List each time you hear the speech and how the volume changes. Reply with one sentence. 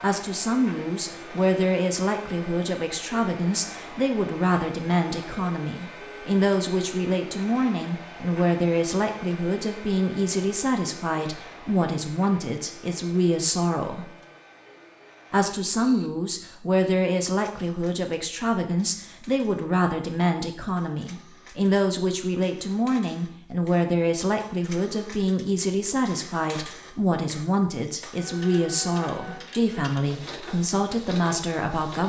The speech can be heard from 0.0 to 14.1 s, at a steady volume; and from 15.3 to 32.0 s, at a steady volume.